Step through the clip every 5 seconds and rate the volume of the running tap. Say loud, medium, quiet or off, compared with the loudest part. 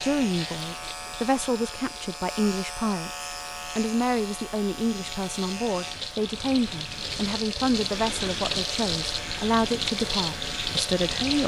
quiet, loud, loud.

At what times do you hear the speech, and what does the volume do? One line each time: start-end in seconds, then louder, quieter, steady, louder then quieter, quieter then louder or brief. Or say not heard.
0.0-11.4 steady.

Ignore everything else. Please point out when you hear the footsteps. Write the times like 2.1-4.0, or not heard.
not heard.